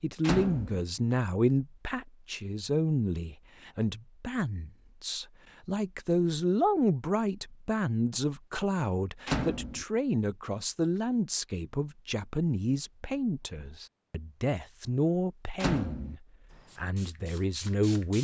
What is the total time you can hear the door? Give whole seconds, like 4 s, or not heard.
2 s.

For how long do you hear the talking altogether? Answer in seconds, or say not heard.
18 s.